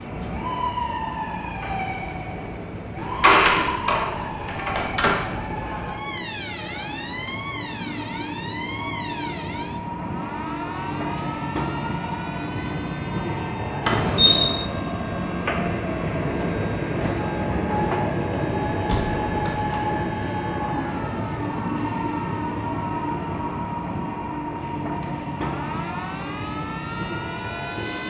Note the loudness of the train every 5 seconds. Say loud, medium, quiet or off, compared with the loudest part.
medium, medium, loud, loud, loud, medium.